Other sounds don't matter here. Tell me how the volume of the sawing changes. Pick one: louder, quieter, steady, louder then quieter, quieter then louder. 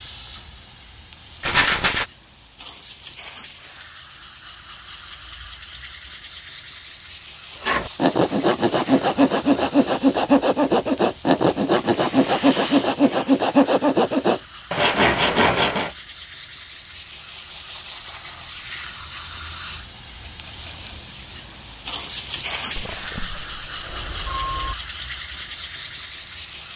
steady.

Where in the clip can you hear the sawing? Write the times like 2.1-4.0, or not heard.
7.6-15.9.